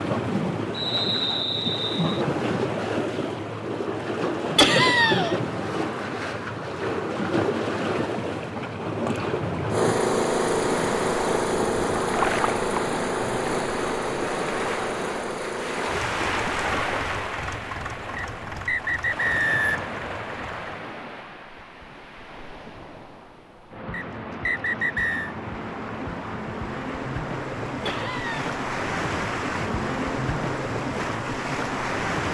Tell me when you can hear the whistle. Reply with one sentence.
You can hear the whistle from 0.7 to 2.2 s, from 18.1 to 19.9 s and from 23.9 to 25.4 s.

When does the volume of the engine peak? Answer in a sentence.
The volume of the engine peaks at 10 seconds.